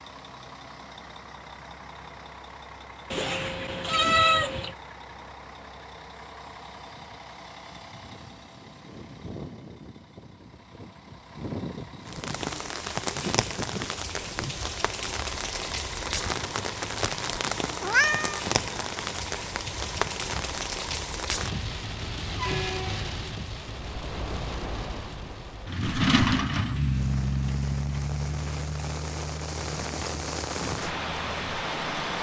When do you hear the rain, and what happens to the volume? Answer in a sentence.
The rain can be heard from 12.1 to 32.1 s, getting quieter then louder.